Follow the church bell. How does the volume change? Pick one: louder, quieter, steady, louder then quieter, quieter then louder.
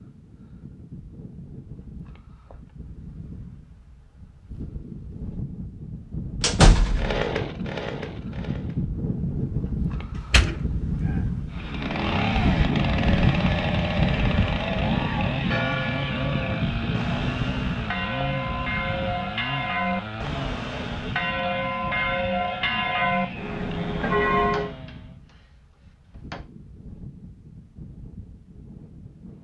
louder.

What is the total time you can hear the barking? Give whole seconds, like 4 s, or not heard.
not heard.